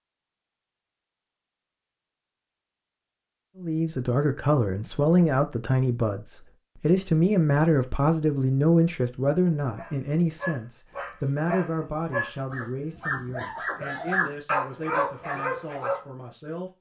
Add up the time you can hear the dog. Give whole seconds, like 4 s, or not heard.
6 s.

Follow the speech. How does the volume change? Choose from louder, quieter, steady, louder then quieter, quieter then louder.
quieter.